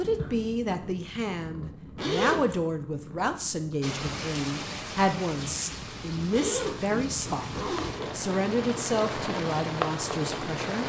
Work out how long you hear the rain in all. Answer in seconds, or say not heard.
7 s.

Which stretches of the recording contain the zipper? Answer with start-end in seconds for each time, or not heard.
1.9-2.6, 6.3-8.1.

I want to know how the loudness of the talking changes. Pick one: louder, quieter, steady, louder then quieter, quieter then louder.
steady.